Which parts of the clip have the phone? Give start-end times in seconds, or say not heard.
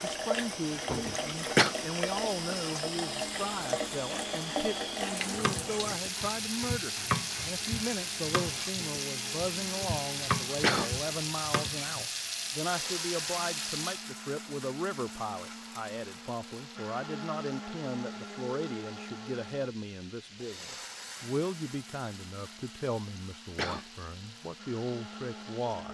not heard.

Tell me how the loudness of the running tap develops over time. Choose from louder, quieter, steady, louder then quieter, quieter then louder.
quieter.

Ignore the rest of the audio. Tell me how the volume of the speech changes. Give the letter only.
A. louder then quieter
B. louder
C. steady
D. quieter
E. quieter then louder
C.